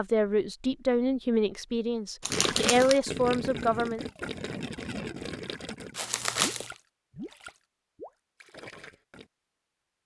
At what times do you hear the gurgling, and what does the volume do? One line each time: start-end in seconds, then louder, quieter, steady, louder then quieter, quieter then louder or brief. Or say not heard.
2.3-9.3 quieter.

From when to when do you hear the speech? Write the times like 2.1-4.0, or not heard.
0.0-4.0.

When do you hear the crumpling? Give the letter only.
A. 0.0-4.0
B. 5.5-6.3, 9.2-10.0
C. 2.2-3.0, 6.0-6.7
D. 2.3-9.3
C.